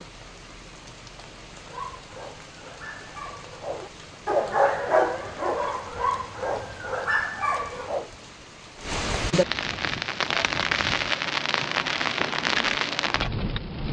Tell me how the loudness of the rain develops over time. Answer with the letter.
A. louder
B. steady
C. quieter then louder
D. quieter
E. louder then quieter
A.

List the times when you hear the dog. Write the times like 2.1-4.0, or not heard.
1.6-8.1.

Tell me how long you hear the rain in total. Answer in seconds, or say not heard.
14 s.